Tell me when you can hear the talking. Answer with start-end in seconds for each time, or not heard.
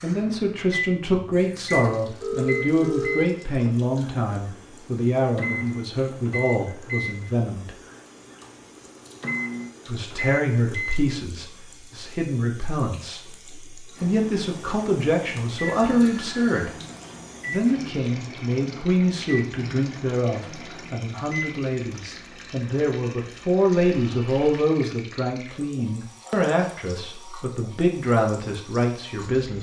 0.0-7.8, 9.8-16.7, 17.4-29.5.